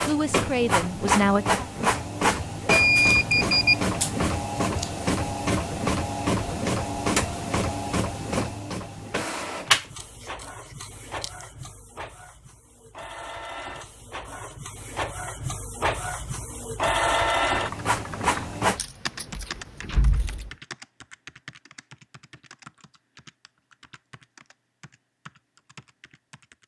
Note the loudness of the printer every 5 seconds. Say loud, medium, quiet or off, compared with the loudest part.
loud, loud, quiet, loud, off, off.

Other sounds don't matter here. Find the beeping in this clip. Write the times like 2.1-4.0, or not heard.
2.7-3.9.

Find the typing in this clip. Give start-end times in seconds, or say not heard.
17.5-26.6.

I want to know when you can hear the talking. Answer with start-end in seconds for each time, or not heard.
0.0-1.6.